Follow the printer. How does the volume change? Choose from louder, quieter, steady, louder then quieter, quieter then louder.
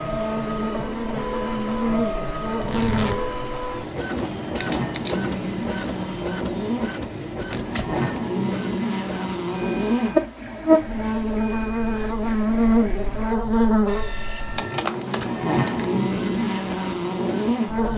quieter.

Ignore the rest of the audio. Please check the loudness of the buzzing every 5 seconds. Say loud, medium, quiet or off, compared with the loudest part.
medium, medium, loud, loud.